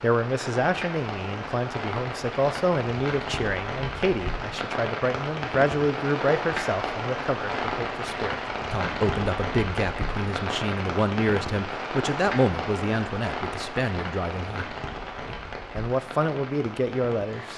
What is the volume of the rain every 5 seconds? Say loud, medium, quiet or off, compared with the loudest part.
loud, loud, loud, medium.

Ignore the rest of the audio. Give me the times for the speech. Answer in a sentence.
You can hear the speech from 0.0 to 17.5 s.